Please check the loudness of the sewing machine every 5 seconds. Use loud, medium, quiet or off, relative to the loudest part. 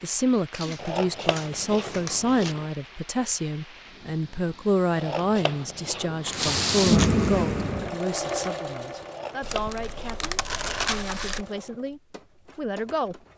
off, loud, quiet.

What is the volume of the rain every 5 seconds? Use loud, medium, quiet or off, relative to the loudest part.
quiet, loud, off.